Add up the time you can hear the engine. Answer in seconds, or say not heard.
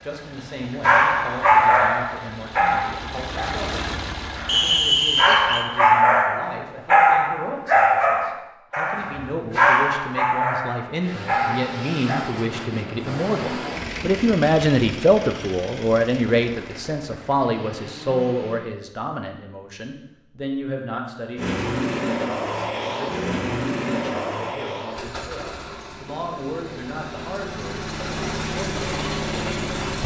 22 s.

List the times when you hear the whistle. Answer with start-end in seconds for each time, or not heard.
4.5-5.7.